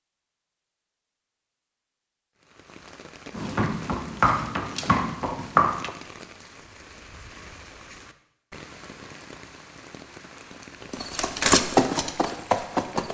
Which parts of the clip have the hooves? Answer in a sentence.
The hooves can be heard from 3.4 to 5.9 s and from 10.9 to 13.0 s.